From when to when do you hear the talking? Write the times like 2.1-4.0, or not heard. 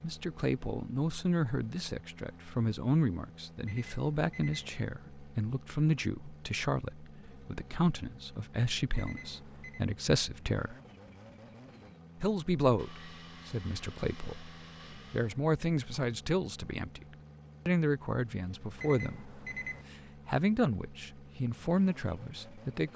0.0-10.8, 12.2-17.1, 17.6-19.3, 20.2-22.9.